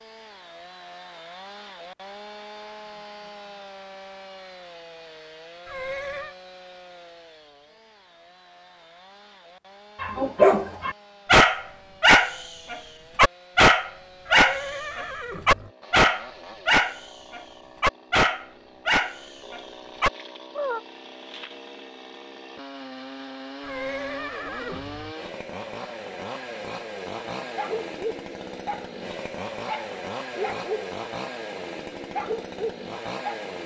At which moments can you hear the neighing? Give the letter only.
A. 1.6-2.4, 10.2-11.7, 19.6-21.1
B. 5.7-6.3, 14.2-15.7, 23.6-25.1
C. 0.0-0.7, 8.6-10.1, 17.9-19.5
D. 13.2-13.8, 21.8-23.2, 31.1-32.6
B.